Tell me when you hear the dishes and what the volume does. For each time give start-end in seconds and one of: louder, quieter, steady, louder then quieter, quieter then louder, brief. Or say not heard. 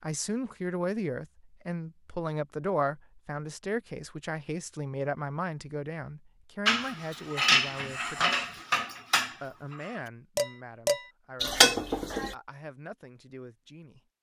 6.7-12.3 quieter then louder.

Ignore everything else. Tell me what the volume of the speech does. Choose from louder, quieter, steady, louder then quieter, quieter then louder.
quieter.